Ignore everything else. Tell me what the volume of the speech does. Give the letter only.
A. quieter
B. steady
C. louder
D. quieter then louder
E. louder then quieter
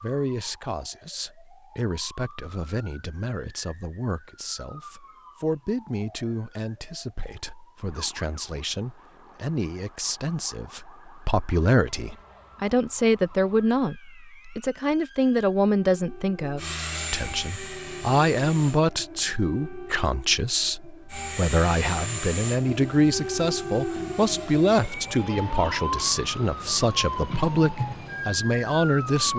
C.